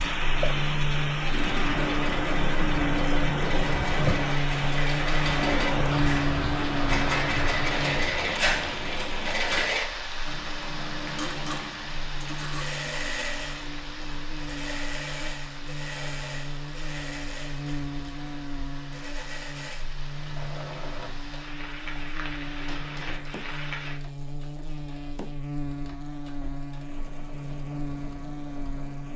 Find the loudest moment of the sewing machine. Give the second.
8 s.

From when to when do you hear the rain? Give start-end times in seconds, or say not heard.
0.0-24.0.